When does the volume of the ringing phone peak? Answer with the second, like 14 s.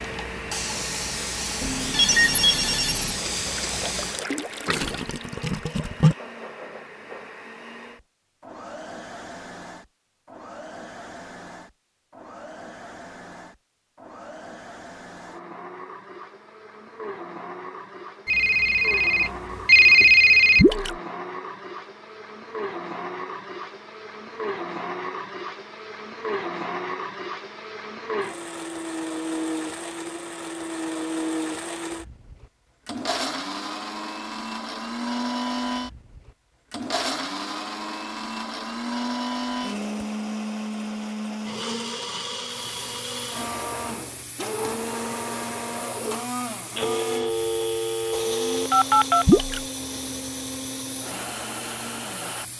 20 s.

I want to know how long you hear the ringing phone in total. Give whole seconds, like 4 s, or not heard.
7 s.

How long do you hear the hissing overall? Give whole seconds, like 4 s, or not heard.
14 s.